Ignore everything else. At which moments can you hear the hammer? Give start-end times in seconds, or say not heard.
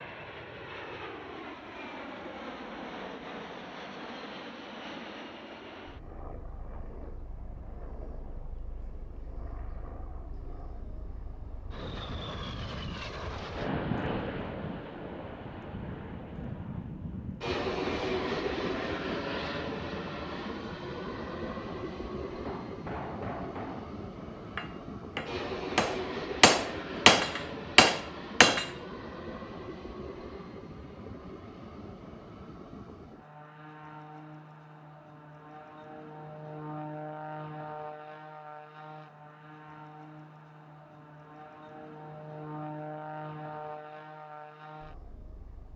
22.4-28.7.